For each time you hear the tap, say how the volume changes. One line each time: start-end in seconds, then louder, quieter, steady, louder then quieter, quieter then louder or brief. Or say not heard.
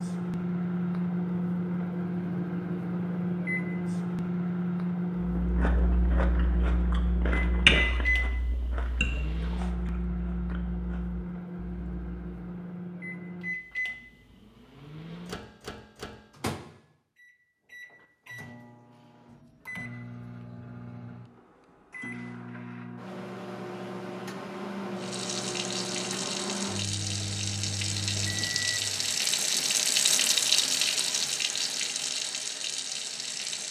24.9-33.6 louder then quieter.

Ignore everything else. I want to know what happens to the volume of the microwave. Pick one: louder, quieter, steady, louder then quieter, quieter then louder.
quieter then louder.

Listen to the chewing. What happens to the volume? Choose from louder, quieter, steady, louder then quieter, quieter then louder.
louder then quieter.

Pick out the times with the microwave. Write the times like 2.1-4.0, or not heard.
0.0-29.1.